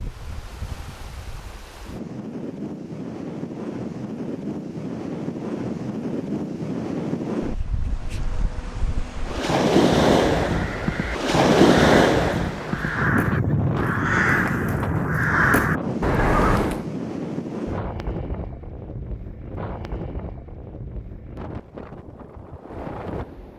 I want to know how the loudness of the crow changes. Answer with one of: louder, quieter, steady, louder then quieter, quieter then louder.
louder.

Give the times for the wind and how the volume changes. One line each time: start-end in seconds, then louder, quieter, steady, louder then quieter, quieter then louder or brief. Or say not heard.
0.0-23.5 louder then quieter.